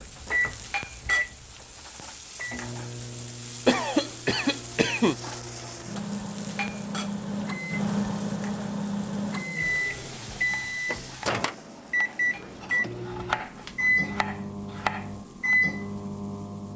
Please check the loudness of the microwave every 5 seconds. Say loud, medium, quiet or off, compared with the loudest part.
medium, loud, loud, loud.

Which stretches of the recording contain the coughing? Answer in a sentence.
You can hear the coughing from 3.6 to 5.2 s.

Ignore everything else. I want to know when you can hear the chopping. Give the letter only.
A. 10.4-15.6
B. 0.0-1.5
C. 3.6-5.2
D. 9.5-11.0
A.